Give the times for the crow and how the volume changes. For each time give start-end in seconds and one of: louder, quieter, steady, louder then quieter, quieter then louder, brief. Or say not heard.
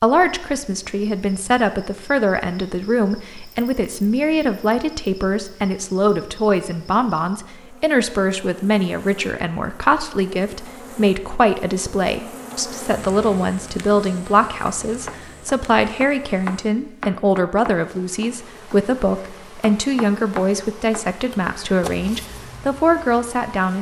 not heard.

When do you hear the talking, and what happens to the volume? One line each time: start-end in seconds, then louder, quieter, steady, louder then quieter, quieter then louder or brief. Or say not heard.
0.0-23.7 steady.